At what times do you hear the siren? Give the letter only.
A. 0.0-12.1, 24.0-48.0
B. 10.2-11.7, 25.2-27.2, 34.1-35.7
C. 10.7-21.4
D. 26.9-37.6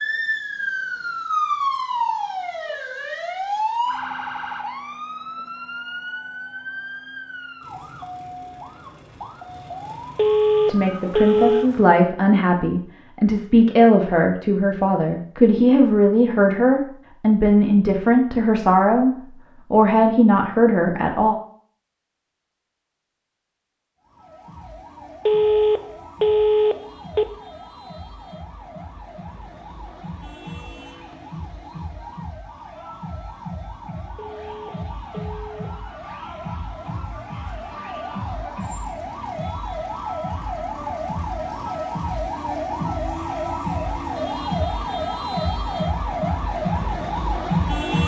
A.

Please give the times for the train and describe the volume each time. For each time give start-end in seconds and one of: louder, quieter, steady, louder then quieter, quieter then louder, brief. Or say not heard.
not heard.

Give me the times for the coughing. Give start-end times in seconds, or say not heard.
not heard.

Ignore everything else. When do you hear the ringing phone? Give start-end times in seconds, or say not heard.
10.2-11.7, 25.2-27.2, 34.1-35.7.